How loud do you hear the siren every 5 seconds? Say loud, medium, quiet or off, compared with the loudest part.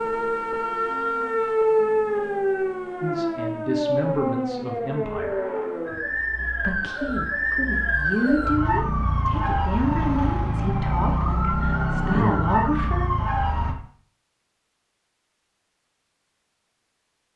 loud, loud, loud, off.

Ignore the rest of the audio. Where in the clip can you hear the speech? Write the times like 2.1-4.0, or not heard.
3.0-5.4, 6.6-13.1.